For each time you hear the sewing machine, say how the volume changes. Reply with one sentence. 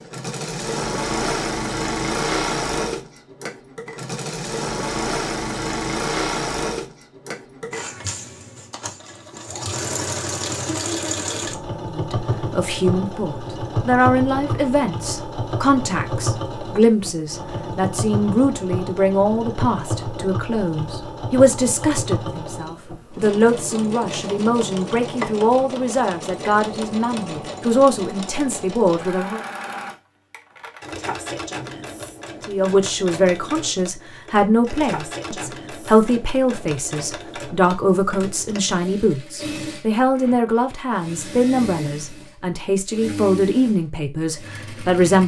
You can hear the sewing machine from 0.0 to 45.2 s, getting quieter.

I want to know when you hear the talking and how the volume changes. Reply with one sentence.
The talking can be heard from 11.9 to 29.4 s, at a steady volume; and from 32.5 to 45.2 s, at a steady volume.